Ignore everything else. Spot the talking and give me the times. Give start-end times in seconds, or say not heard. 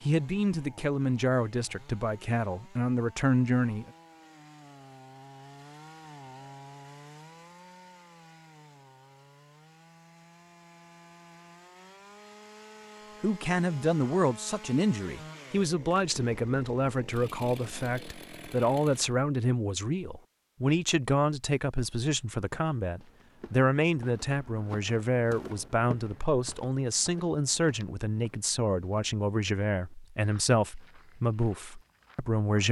0.0-3.9, 13.2-32.6.